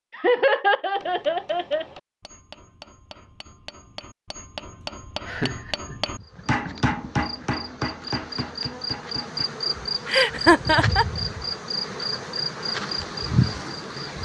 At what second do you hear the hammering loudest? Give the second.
7 s.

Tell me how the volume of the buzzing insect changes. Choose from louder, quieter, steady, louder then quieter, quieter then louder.
louder.